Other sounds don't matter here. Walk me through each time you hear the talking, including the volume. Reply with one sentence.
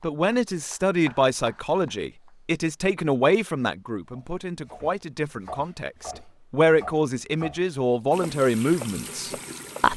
You can hear the talking from 0.0 to 9.9 s, getting quieter then louder.